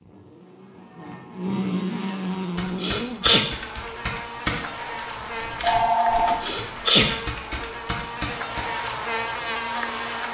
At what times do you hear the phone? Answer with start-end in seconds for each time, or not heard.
5.2-6.4.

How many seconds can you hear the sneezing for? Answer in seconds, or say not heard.
2 s.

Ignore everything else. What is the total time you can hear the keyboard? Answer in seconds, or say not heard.
6 s.